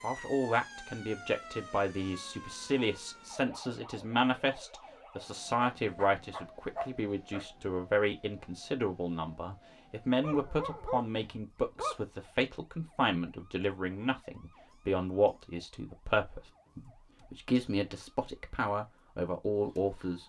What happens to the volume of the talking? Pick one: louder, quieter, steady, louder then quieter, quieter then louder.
steady.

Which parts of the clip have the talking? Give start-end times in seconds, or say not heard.
0.0-20.2.